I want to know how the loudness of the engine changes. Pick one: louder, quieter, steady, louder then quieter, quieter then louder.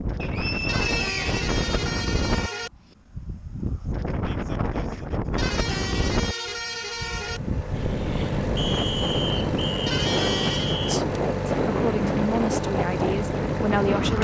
steady.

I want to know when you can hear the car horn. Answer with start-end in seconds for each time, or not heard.
0.7-2.7, 5.3-7.4, 9.8-10.8.